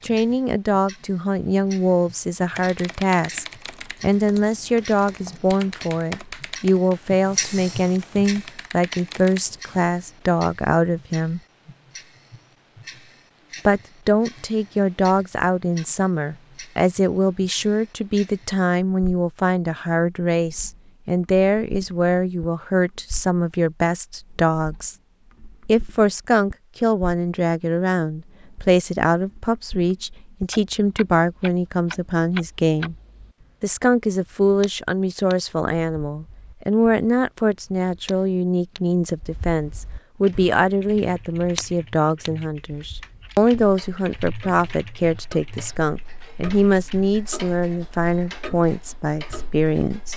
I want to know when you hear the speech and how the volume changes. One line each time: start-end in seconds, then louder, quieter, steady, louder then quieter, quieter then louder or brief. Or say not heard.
0.0-11.4 steady
13.7-24.9 steady
25.6-33.0 steady
33.6-50.1 steady.